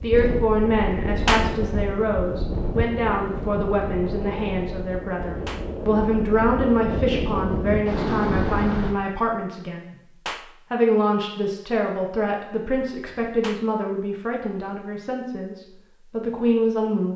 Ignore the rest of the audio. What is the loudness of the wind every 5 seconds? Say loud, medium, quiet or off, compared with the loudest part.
loud, loud, off, off.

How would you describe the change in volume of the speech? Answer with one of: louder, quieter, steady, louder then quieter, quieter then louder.
steady.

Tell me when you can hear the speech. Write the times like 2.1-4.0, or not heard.
0.0-9.9, 10.7-17.1.